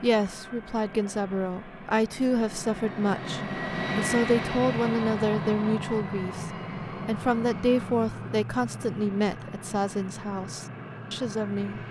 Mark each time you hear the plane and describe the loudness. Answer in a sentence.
You can hear the plane from 0.0 to 11.8 s, getting louder then quieter.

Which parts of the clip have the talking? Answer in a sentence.
You can hear the talking from 0.0 to 11.8 s.